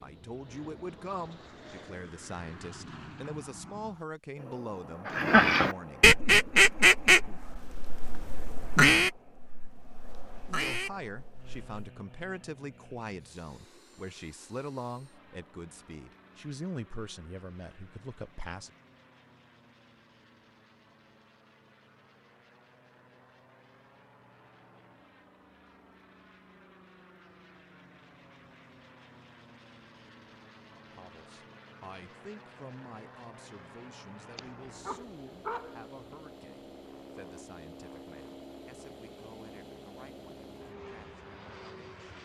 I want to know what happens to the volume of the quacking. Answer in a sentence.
The loudness of the quacking goes down.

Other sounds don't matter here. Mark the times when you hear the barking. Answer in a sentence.
The barking can be heard from 34.3 to 36.1 s.